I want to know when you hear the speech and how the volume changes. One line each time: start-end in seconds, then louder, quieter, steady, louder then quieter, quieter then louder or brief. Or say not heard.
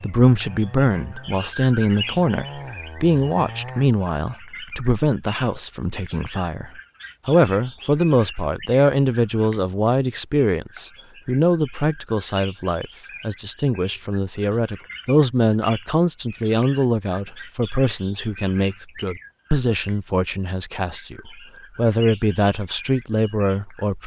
0.0-24.0 steady.